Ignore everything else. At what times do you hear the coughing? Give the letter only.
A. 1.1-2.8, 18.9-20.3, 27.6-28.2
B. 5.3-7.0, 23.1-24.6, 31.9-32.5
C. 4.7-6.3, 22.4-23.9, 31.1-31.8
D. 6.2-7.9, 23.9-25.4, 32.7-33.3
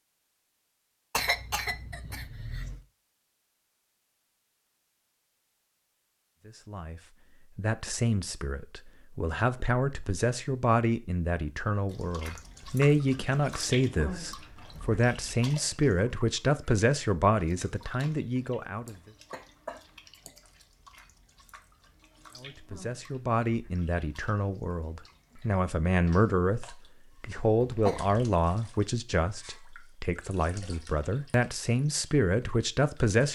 A.